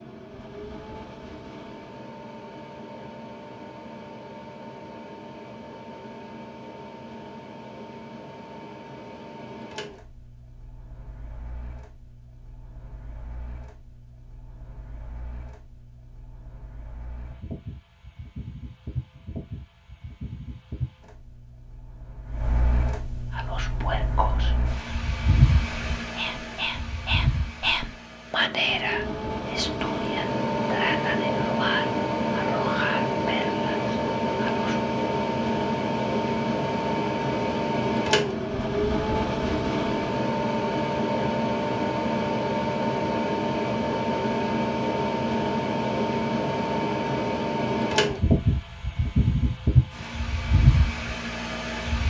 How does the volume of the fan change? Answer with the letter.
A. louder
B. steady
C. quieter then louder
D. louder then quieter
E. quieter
A.